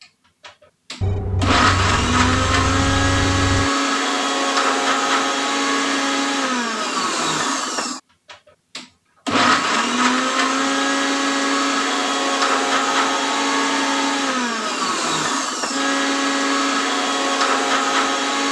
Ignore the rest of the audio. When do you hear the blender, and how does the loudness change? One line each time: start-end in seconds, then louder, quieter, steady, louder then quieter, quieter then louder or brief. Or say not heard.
0.5-18.4 steady.